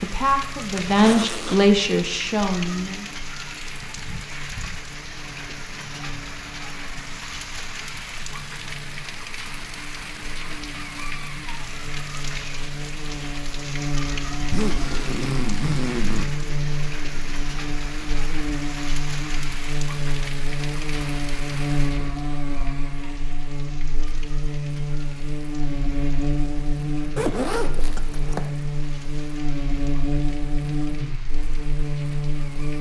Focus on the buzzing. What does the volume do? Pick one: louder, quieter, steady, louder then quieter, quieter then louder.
louder.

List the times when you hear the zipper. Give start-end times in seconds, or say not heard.
0.8-1.6, 14.3-16.2, 27.1-28.5.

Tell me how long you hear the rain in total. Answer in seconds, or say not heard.
33 s.